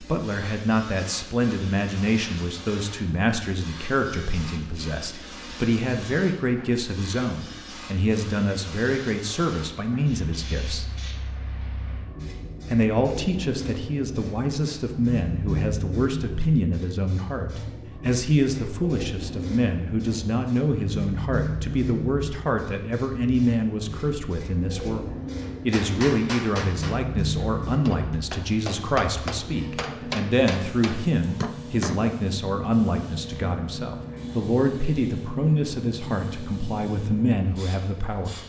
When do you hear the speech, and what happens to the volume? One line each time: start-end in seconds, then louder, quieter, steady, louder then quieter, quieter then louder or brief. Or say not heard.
0.0-10.8 steady
12.7-38.4 steady.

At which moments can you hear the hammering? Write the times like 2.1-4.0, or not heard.
25.4-32.0.